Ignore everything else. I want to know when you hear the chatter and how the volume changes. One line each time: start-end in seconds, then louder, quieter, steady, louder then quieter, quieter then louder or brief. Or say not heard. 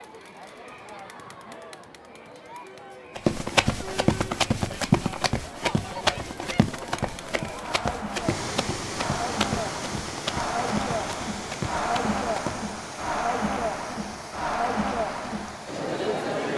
0.0-16.5 louder.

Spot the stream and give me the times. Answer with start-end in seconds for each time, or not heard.
8.1-16.5.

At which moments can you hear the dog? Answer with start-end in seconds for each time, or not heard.
not heard.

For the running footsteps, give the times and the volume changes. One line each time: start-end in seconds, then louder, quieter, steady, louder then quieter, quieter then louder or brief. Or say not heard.
3.1-12.7 quieter.